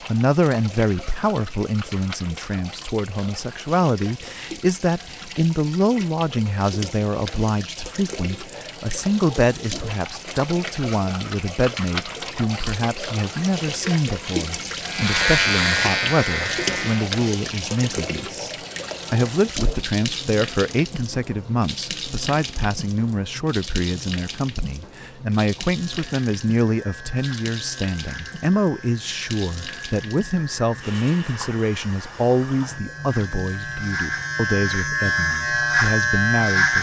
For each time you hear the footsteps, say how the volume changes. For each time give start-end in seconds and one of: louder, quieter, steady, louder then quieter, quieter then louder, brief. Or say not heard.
not heard.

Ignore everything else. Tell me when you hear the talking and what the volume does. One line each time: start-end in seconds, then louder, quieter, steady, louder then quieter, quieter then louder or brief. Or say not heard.
0.1-36.7 steady.